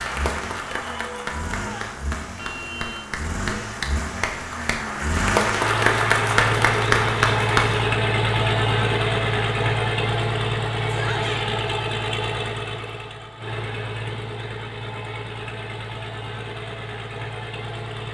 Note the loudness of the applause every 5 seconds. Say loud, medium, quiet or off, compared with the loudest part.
medium, loud, off, off.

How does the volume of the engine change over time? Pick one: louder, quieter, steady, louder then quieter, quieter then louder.
louder then quieter.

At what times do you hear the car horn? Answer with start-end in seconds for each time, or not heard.
2.4-3.0.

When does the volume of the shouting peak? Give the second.
11 s.